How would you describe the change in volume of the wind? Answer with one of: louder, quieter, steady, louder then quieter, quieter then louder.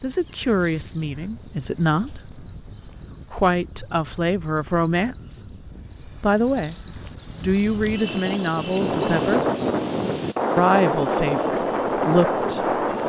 louder.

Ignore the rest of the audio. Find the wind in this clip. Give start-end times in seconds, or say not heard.
0.0-13.0.